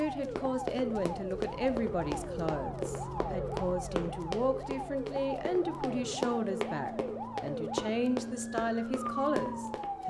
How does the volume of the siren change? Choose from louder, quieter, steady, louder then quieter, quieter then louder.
steady.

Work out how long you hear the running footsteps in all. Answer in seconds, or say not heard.
10 s.